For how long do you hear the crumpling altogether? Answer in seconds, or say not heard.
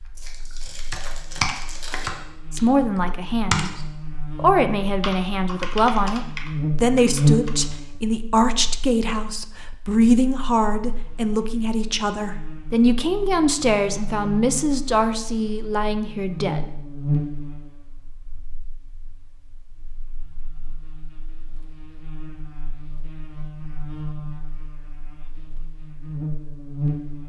2 s.